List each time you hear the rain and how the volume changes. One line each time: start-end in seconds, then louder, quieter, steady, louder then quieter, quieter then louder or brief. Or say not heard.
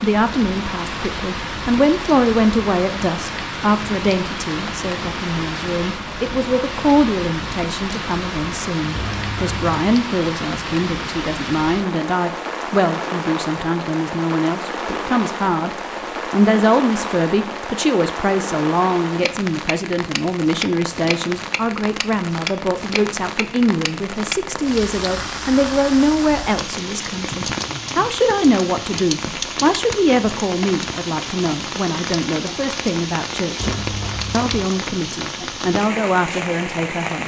0.0-37.2 steady.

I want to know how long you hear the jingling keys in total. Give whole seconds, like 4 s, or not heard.
2 s.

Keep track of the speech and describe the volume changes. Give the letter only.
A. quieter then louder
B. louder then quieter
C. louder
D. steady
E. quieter
D.